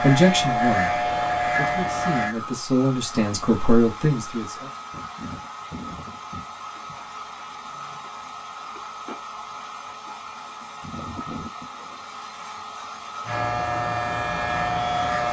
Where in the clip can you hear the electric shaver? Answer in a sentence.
You can hear the electric shaver from 0.0 to 2.4 s and from 13.2 to 15.2 s.